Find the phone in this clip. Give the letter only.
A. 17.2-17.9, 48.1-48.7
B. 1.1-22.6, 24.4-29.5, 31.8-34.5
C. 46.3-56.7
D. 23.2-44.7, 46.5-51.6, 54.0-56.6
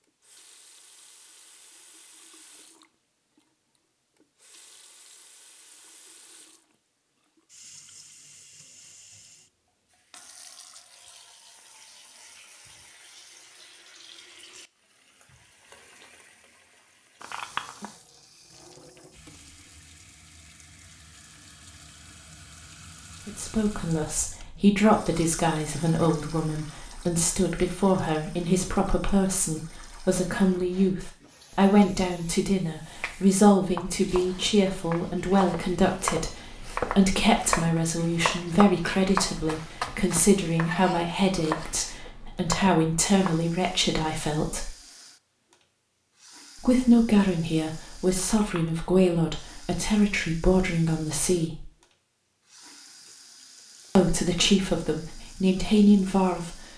A.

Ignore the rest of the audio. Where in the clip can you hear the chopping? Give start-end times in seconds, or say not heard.
33.0-43.4.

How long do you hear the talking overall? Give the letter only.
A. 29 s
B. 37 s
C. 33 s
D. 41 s
A.